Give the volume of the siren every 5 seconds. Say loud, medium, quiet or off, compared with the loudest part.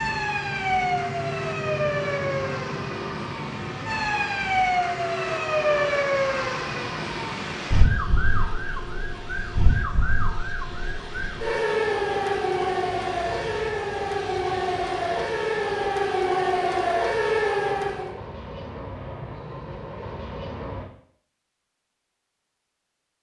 loud, loud, loud, loud, off.